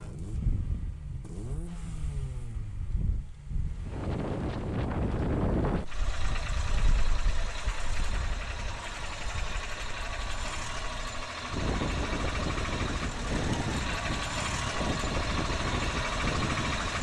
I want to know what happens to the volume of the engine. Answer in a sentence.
The loudness of the engine goes up.